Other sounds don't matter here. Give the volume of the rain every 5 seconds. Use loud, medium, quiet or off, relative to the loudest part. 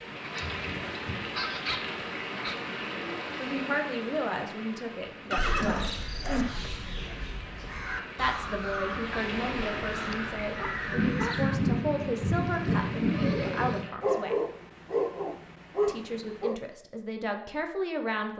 medium, medium, loud, off.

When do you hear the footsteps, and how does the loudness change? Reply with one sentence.
The footsteps can't be heard in this clip.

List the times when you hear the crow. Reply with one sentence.
The crow can be heard from 5.4 to 11.6 s.